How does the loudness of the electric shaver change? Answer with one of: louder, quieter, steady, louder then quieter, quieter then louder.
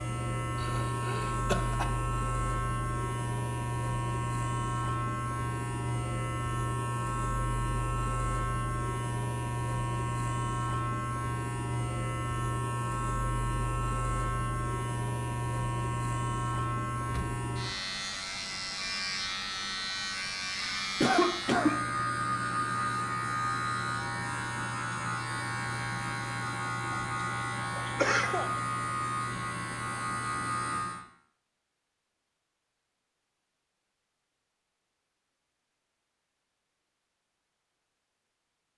steady.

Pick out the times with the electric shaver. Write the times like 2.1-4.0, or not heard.
0.0-31.1.